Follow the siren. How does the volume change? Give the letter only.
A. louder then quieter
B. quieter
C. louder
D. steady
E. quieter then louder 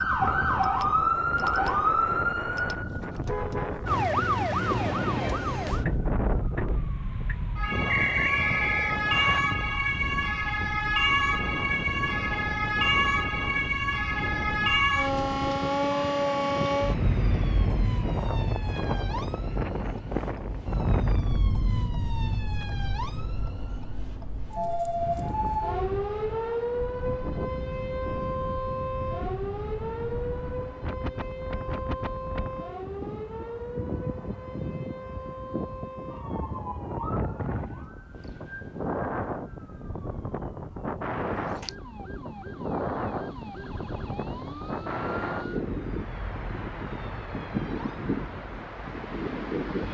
B.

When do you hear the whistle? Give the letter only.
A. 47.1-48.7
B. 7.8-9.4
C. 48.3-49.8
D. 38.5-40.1
B.